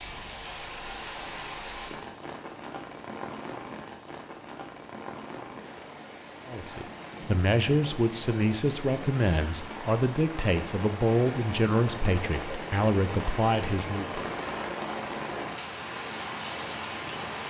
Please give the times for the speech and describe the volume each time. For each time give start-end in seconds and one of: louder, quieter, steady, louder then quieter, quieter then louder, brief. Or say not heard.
6.5-14.2 steady.